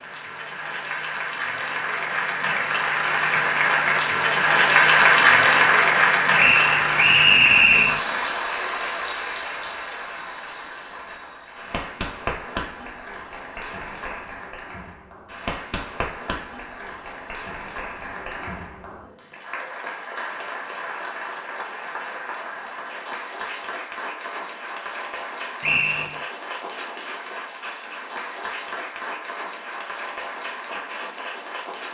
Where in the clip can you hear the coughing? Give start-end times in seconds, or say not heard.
not heard.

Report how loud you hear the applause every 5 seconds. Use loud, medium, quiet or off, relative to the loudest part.
loud, loud, quiet, quiet, quiet, quiet, quiet.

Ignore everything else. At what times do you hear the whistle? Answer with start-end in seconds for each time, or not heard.
6.3-8.0, 25.6-26.3.